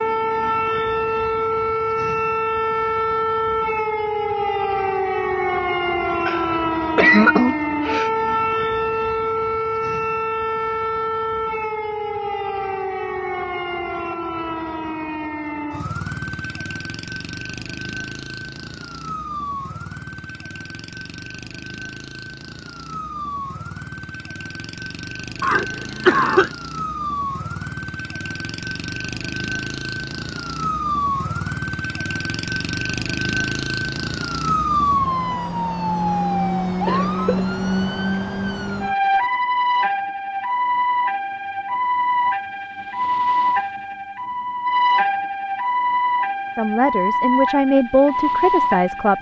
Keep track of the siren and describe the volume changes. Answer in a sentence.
The volume of the siren goes down, then up.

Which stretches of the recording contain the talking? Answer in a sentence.
The talking can be heard from 46.5 to 49.1 s.